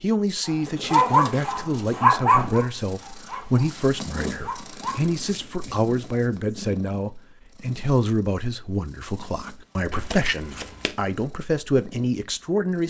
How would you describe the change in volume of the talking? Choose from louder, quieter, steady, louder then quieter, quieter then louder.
steady.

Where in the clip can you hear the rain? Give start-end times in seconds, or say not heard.
not heard.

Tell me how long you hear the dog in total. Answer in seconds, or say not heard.
5 s.